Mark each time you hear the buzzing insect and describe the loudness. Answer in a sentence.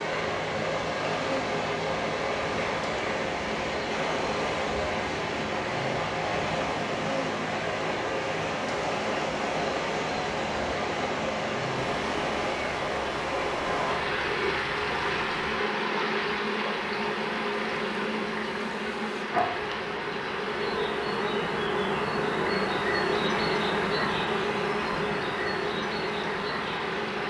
You can hear the buzzing insect from 0.0 to 27.2 s, getting louder.